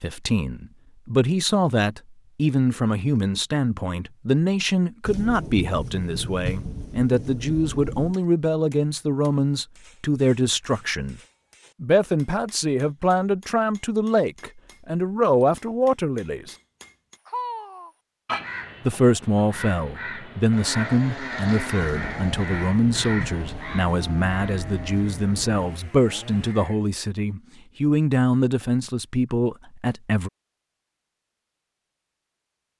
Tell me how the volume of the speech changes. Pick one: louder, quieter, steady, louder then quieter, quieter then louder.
steady.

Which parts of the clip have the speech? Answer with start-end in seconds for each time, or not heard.
0.0-11.2, 11.8-16.6, 18.9-30.3.